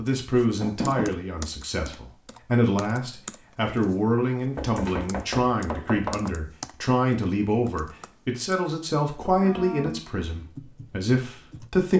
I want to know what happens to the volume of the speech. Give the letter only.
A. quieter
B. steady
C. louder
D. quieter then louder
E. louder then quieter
B.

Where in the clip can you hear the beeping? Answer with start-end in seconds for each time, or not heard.
not heard.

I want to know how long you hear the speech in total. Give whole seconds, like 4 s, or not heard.
12 s.